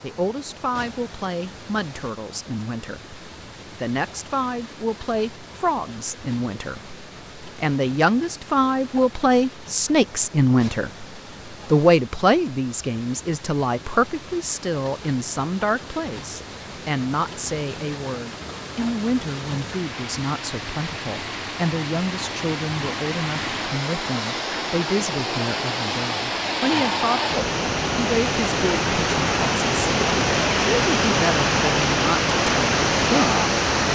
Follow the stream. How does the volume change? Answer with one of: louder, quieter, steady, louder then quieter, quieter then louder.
louder.